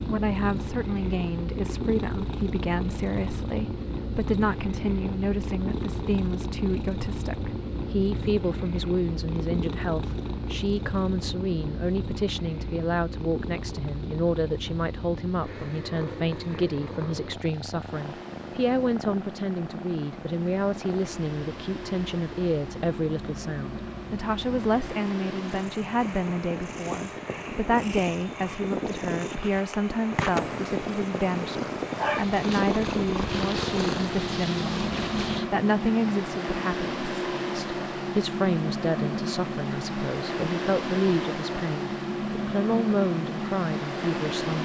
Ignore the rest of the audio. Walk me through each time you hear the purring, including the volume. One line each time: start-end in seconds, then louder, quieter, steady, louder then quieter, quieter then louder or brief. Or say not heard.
0.0-35.5 quieter then louder.